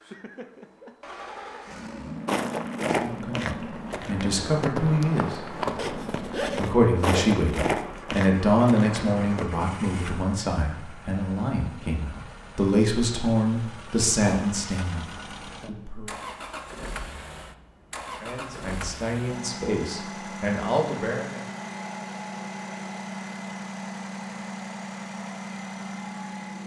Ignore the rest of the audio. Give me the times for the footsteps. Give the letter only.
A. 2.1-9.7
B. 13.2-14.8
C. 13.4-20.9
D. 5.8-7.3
A.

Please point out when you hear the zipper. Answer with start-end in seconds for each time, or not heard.
5.8-7.3.